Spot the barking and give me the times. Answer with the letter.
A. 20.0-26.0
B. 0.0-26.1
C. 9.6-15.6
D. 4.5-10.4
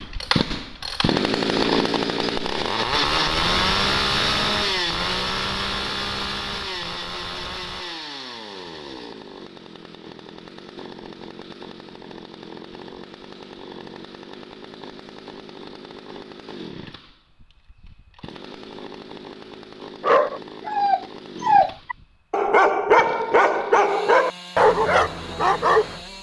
A.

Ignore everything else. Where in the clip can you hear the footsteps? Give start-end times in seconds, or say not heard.
not heard.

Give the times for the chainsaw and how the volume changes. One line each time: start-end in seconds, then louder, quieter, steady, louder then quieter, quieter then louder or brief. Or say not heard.
0.0-26.1 quieter.